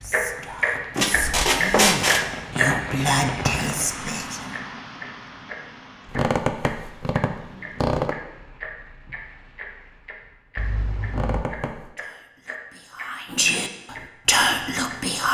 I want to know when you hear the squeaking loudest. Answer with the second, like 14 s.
2 s.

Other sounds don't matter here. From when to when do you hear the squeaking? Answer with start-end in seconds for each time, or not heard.
0.9-2.2, 6.1-8.2, 11.1-11.9.